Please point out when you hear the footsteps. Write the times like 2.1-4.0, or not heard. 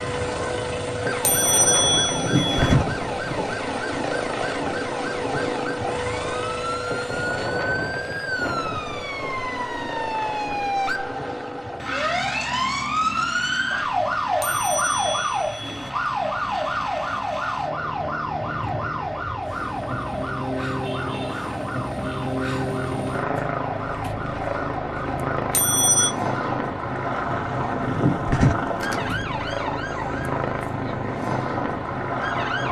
not heard.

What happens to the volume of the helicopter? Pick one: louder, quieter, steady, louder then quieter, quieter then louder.
quieter then louder.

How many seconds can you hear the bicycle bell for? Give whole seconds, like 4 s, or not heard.
4 s.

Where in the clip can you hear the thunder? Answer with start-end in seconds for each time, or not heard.
2.1-3.5, 27.8-29.2.